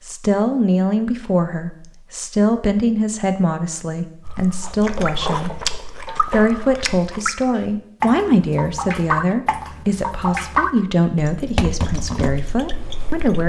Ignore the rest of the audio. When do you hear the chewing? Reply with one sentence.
You can hear the chewing from 4.2 to 7.3 s.